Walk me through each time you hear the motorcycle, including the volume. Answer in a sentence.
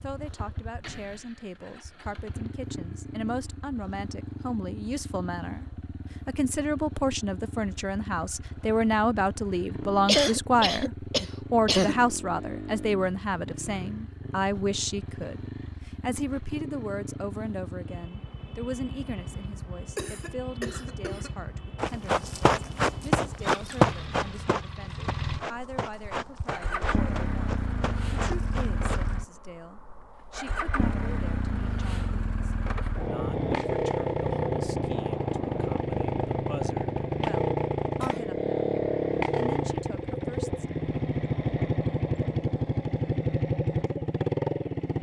The motorcycle can be heard from 0.0 to 44.9 s, getting louder.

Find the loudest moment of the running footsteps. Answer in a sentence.
The loudest moment of the running footsteps is at 24 seconds.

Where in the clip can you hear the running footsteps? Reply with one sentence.
You can hear the running footsteps from 21.8 to 29.1 s.